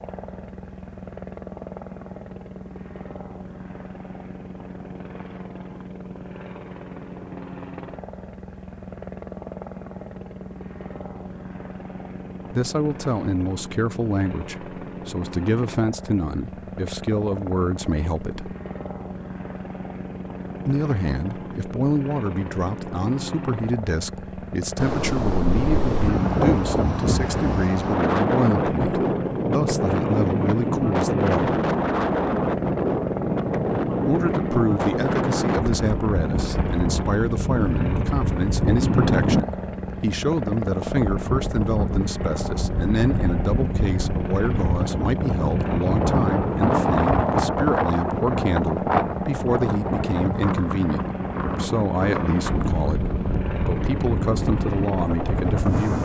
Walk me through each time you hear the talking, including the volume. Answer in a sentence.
The talking can be heard from 12.5 to 18.6 s, at a steady volume; from 20.6 to 31.6 s, at a steady volume; and from 34.0 to 56.0 s, at a steady volume.